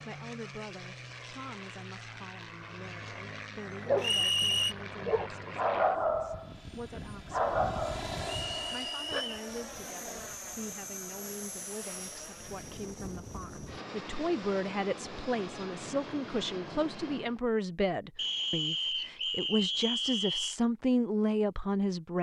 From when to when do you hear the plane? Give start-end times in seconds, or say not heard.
0.0-17.4.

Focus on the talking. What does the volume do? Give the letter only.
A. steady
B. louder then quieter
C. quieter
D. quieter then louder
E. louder
E.